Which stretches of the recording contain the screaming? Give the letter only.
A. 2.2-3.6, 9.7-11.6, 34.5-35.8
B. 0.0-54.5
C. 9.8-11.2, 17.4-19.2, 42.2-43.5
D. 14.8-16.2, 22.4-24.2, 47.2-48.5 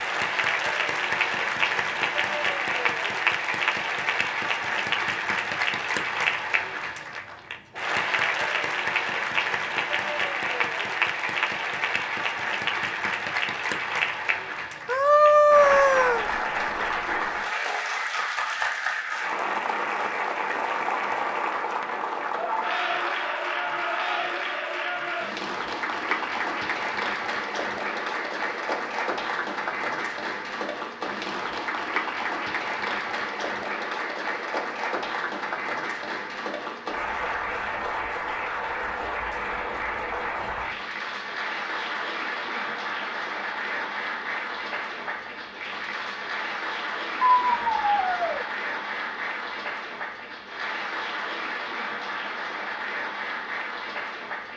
D.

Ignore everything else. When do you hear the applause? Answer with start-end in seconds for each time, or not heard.
0.0-54.5.